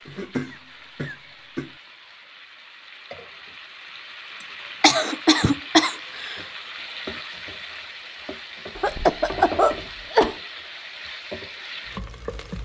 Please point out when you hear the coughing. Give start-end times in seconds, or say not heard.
0.1-1.7, 4.4-6.4, 8.8-10.3.